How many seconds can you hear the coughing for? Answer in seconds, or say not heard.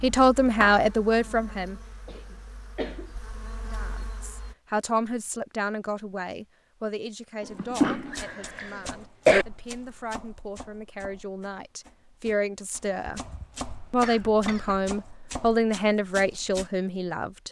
5 s.